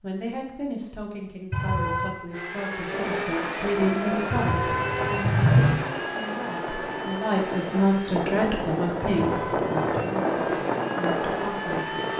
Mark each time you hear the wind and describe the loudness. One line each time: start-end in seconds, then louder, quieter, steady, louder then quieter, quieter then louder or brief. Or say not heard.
2.9-12.1 louder.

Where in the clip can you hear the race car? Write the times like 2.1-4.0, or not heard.
2.3-12.1.